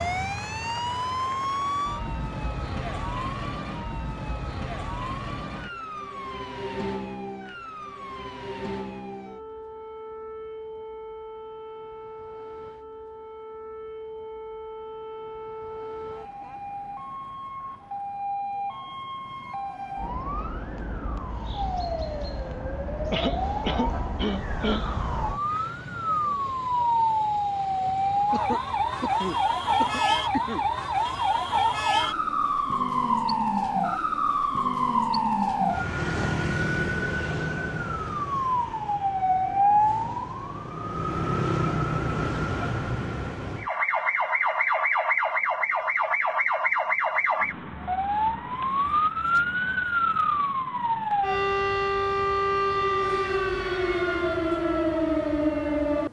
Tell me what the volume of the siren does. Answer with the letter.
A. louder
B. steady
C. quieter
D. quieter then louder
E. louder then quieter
A.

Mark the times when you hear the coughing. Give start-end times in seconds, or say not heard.
23.1-24.9, 28.3-30.6.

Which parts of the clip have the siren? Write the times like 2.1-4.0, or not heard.
0.0-56.0.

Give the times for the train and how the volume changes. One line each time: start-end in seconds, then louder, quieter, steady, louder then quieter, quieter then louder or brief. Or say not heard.
not heard.